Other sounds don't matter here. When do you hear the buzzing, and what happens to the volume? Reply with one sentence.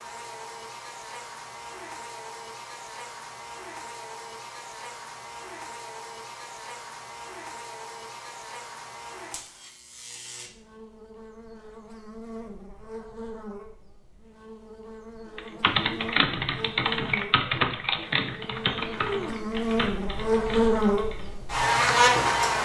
The buzzing can be heard from 0.0 to 22.6 s, getting louder.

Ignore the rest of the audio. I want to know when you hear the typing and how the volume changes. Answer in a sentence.
The typing can be heard from 15.3 to 21.3 s, getting quieter.